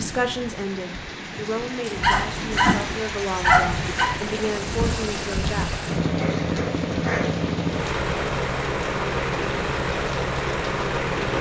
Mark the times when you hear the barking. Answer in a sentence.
The barking can be heard from 1.9 to 4.0 s and from 6.0 to 7.4 s.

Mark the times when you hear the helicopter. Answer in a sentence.
The helicopter can be heard from 3.5 to 11.3 s.